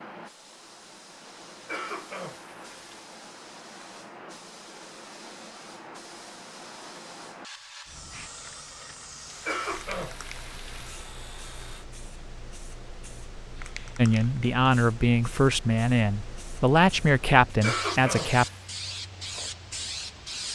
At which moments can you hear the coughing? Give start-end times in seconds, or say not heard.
1.6-3.0, 9.4-10.9, 17.6-18.6.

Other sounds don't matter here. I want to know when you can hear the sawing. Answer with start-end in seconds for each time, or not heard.
9.2-11.8.